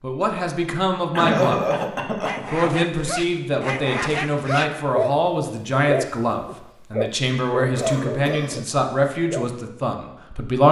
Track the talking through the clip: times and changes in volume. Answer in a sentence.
You can hear the talking briefly from 0.0 to 1.6 s; and from 2.5 to 10.6 s, at a steady volume.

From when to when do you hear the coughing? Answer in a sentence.
The coughing can be heard from 1.1 to 2.8 s and from 7.8 to 8.6 s.